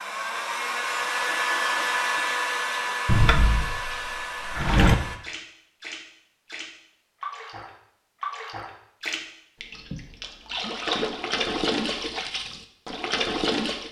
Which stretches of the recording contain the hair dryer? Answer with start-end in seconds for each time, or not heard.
0.0-5.2.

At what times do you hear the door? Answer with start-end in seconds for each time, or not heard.
3.0-5.0.